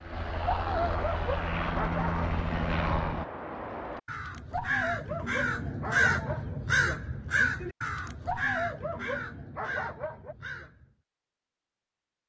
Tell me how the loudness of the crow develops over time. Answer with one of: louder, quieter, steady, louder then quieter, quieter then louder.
louder then quieter.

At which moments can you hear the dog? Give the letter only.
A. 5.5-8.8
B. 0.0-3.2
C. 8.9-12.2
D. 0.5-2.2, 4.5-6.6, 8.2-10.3
D.